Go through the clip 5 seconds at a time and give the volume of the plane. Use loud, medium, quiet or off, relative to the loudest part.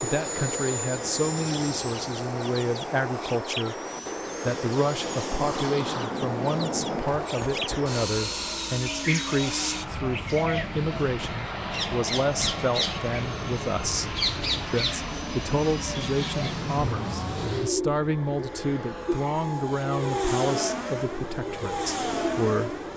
medium, loud, loud, loud, loud.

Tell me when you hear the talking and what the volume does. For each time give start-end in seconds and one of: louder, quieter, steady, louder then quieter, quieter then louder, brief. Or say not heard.
0.0-22.9 steady.